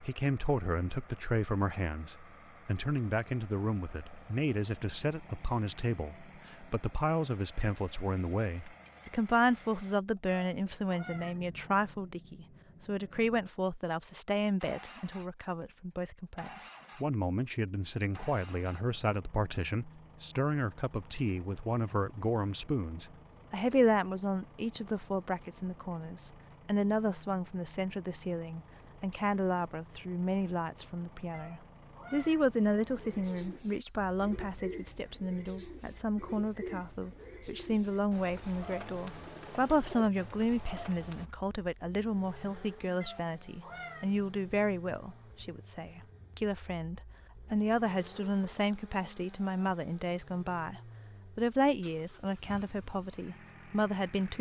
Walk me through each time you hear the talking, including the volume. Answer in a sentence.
You can hear the talking from 0.0 to 54.3 s, at a steady volume.